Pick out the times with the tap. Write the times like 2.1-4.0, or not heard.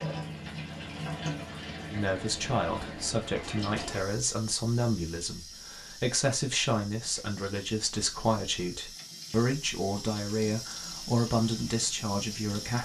0.0-12.8.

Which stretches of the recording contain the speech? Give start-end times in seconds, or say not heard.
1.9-12.8.